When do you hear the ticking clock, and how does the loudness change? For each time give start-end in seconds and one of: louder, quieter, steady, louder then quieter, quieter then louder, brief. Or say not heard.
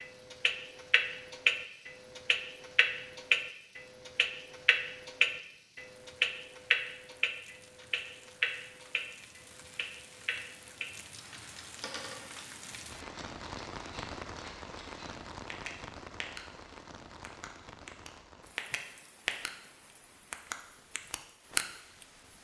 0.0-16.4 quieter
17.2-19.5 brief
20.3-22.3 brief.